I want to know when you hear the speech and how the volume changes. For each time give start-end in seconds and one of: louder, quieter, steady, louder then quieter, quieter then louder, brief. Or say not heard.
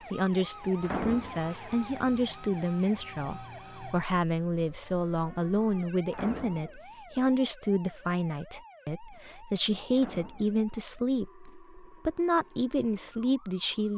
0.1-13.9 steady.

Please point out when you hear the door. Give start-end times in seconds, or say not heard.
0.8-1.5, 6.1-6.8, 9.9-10.6.